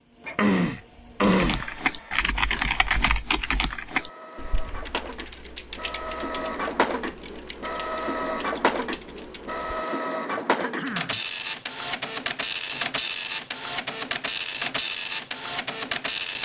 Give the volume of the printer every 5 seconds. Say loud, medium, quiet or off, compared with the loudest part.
quiet, loud, loud, loud.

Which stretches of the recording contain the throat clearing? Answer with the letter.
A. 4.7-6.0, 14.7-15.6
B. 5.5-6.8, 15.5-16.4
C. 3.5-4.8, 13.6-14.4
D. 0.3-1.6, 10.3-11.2
D.